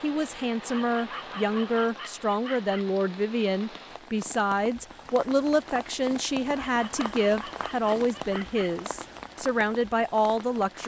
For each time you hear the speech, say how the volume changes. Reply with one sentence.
You can hear the speech from 0.0 to 10.8 s, at a steady volume.